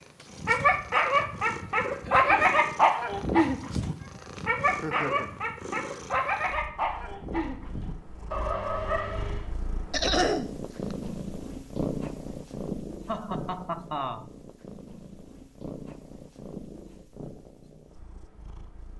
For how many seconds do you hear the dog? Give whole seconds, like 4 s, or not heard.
9 s.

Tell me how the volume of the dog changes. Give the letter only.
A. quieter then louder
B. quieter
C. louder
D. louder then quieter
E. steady
B.